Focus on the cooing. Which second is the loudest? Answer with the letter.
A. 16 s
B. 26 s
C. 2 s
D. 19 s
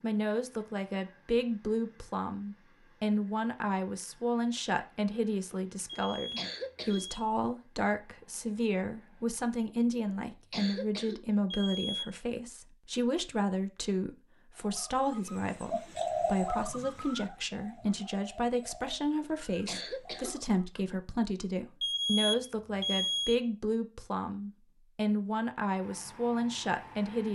A.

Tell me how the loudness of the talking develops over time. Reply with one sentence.
The loudness of the talking stays about the same.